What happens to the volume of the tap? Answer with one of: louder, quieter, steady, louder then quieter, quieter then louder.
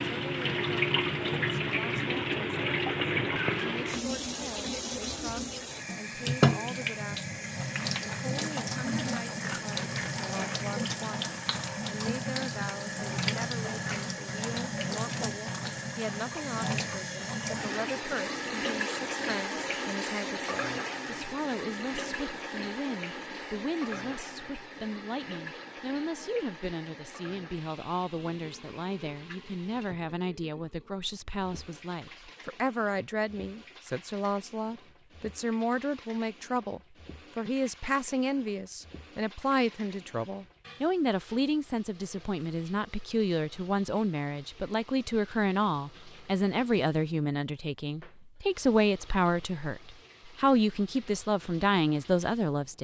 quieter.